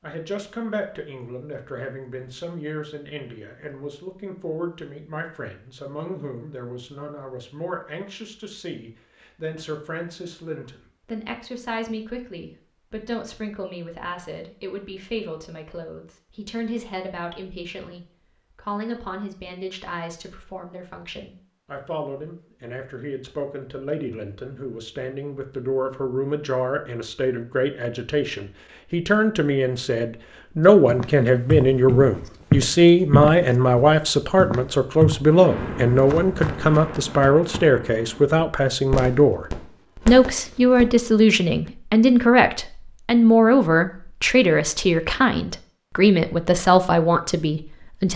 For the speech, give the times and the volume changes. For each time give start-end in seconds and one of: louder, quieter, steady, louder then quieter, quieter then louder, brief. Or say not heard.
0.0-48.1 louder.